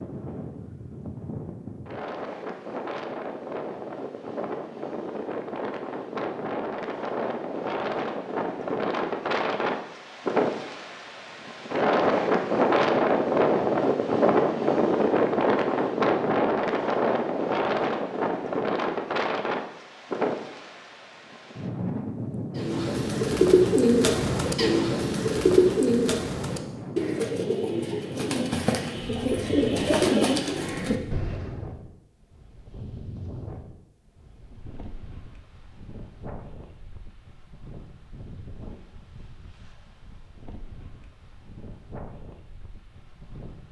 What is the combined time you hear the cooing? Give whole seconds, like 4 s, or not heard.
9 s.